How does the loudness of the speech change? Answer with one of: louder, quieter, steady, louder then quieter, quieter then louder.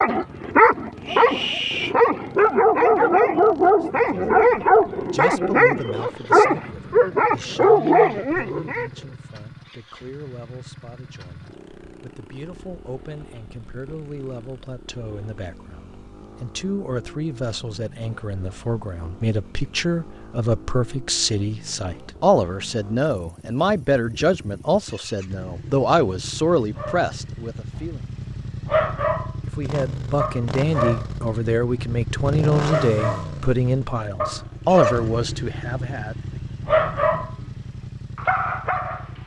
louder.